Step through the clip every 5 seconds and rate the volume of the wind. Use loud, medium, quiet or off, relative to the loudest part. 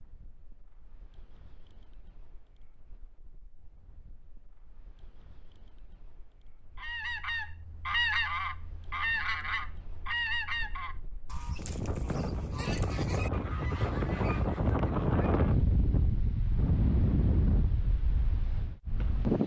quiet, quiet, loud, loud.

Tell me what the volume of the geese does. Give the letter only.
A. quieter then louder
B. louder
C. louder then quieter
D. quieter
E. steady
D.